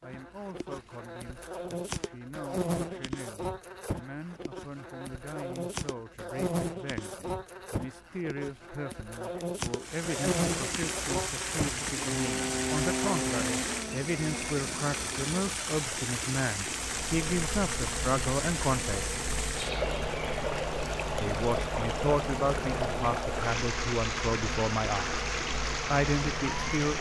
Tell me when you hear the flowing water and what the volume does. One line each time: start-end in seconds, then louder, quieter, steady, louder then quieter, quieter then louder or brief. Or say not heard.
9.8-26.9 steady.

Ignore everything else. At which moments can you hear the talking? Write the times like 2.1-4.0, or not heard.
0.0-19.1, 21.2-25.2, 25.9-26.9.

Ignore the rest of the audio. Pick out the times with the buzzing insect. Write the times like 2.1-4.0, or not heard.
0.0-15.5, 16.8-26.9.